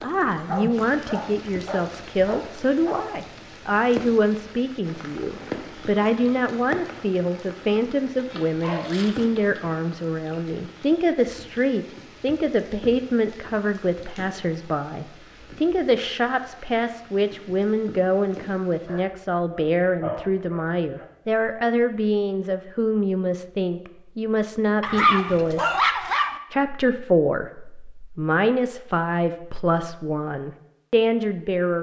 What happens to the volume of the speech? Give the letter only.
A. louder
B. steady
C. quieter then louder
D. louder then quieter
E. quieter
B.